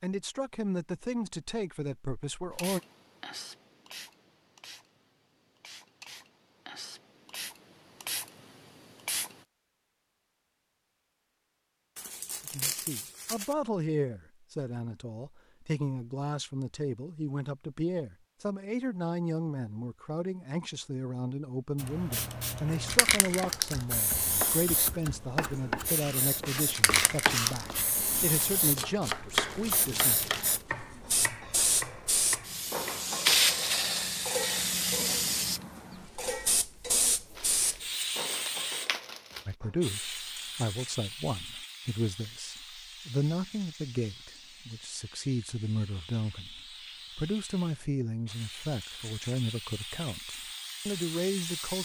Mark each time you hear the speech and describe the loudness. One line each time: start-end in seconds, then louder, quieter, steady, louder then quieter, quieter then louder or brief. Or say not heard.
0.0-2.8 brief
12.4-30.2 steady
39.5-51.8 steady.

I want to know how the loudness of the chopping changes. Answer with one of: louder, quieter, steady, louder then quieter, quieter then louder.
louder then quieter.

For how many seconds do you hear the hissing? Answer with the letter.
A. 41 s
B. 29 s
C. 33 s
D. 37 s
D.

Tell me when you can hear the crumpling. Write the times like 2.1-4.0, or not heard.
11.9-13.6, 28.3-30.6, 37.4-39.5.